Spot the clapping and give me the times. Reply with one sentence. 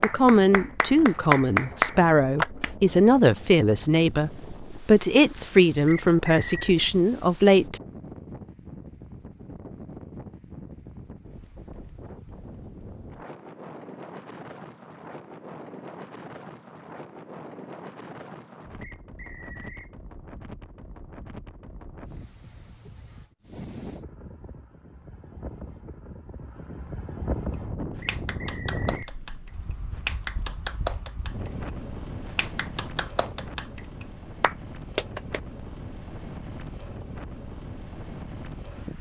The clapping can be heard from 0.0 to 2.7 s and from 27.5 to 35.4 s.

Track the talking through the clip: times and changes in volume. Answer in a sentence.
You can hear the talking from 0.0 to 7.8 s, at a steady volume.